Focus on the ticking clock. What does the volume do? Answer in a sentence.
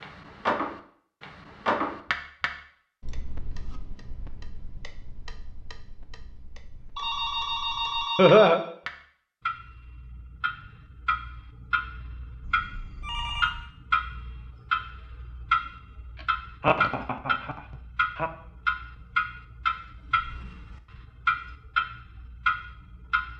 The loudness of the ticking clock goes down, then up.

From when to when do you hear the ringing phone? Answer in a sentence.
The ringing phone can be heard from 7.0 to 8.5 s and from 12.4 to 13.7 s.